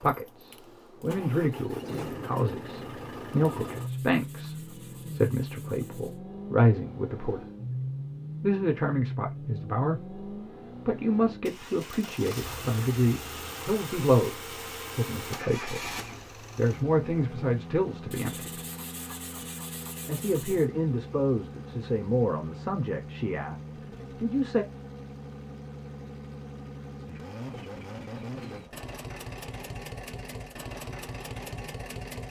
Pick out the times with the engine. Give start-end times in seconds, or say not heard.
0.0-32.2.